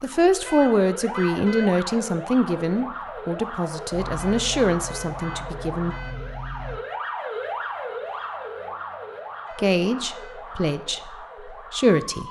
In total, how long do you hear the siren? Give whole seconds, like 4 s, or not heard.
12 s.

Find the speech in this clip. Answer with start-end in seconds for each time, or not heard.
0.0-6.0, 9.6-12.2.